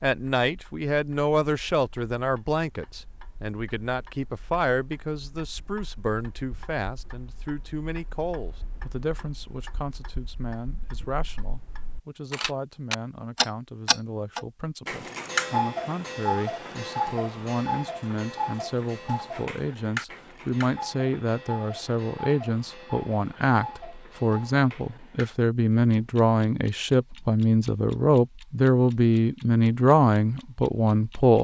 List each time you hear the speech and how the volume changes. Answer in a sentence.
You can hear the speech from 0.0 to 31.3 s, getting quieter then louder.